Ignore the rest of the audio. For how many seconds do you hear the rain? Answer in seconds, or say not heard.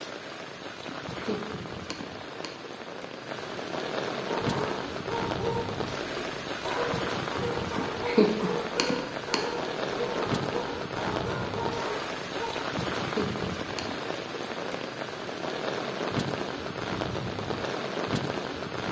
19 s.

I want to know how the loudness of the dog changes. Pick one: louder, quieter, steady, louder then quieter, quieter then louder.
steady.